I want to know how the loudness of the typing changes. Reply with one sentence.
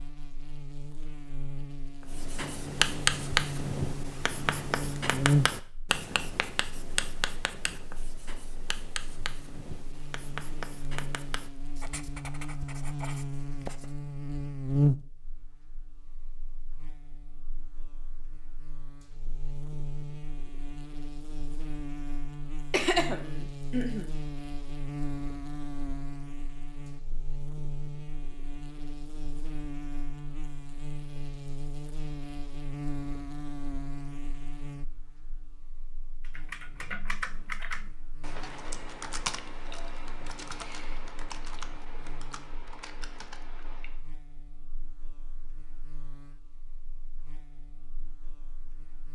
The loudness of the typing goes down.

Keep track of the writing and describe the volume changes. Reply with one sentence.
The loudness of the writing goes down.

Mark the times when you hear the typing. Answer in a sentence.
The typing can be heard from 36.2 to 44.0 s.